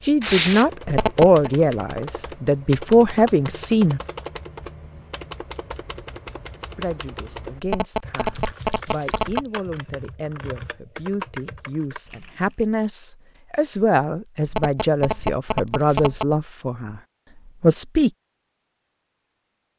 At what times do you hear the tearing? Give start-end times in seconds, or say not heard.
0.2-0.7, 8.2-9.5, 15.7-16.1.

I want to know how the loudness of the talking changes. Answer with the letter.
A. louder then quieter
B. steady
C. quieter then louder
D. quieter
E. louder
C.